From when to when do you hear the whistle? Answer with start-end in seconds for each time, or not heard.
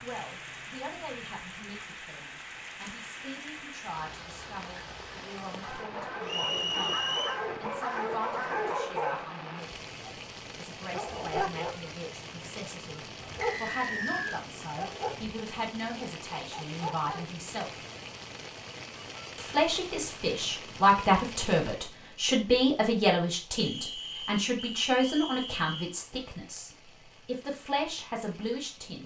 6.2-7.4, 13.4-14.4, 23.6-25.9.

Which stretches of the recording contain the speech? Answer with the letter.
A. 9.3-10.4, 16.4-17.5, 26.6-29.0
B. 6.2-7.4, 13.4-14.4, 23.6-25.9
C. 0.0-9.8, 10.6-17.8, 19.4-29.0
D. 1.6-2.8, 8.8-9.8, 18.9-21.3
C.